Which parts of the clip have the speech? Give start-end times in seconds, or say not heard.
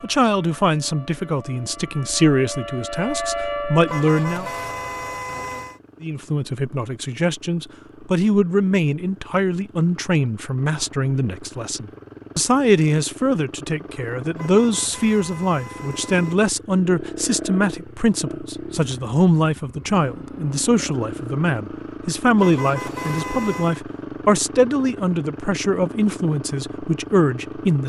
0.0-4.5, 6.0-27.8.